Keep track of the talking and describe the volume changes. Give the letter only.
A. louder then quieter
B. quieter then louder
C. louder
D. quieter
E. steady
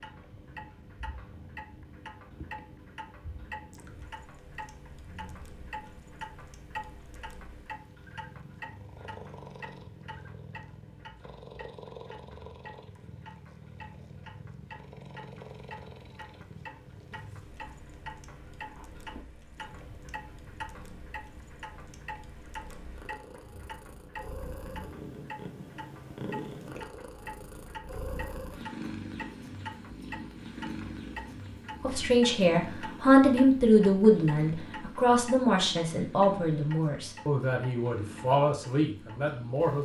D.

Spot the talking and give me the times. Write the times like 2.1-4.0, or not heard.
31.8-39.7.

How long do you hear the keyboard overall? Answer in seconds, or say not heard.
not heard.